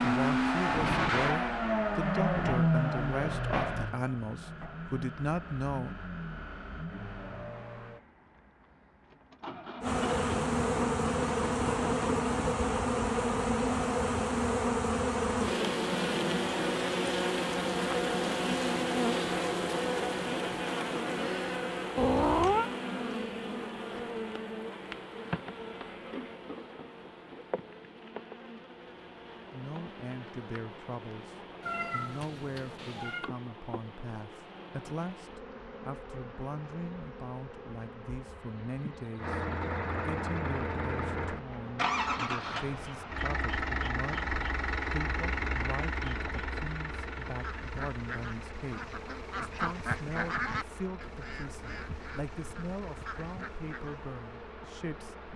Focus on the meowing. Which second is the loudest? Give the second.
22 s.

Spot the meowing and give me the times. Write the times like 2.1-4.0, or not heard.
21.9-22.7, 31.6-33.3.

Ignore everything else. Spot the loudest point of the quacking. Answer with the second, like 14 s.
50 s.